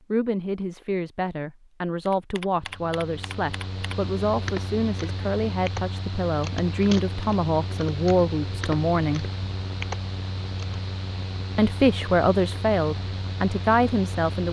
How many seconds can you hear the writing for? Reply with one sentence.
The writing can't be heard in this clip.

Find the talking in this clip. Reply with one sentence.
You can hear the talking from 0.1 to 9.3 s and from 11.6 to 14.4 s.